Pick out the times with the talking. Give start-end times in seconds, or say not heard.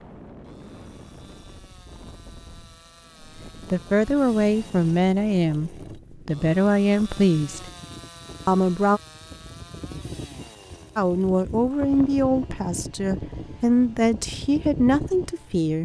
3.6-7.7, 8.4-9.0, 10.9-15.8.